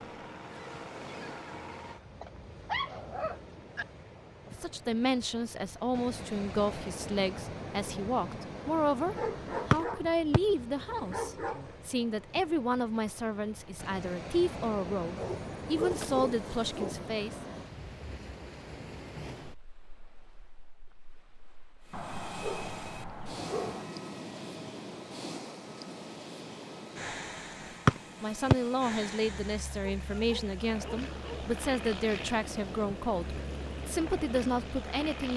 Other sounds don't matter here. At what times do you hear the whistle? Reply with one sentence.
The whistle can be heard from 9.7 to 10.8 s and from 27.9 to 29.1 s.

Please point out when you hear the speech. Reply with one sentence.
The speech can be heard from 4.5 to 17.4 s and from 28.2 to 35.3 s.